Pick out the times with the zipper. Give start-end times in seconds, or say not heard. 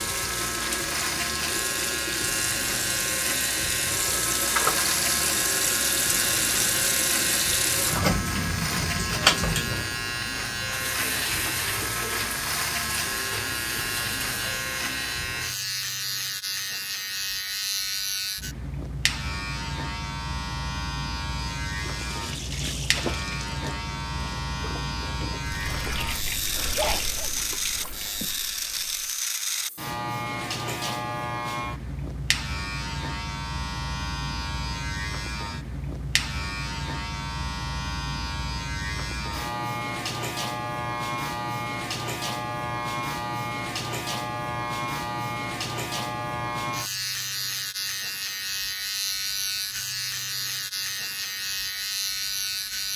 not heard.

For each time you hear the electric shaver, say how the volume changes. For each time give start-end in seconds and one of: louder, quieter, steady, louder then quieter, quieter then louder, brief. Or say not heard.
0.0-52.9 steady.